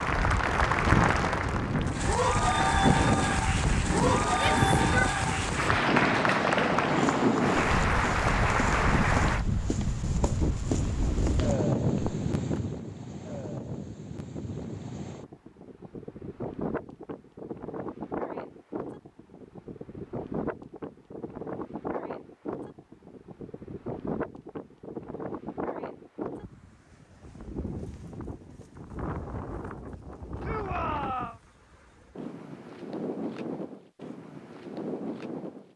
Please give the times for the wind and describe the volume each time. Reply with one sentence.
You can hear the wind from 0.0 to 35.7 s, getting quieter.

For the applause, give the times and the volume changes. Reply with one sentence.
You can hear the applause from 0.0 to 9.4 s, at a steady volume.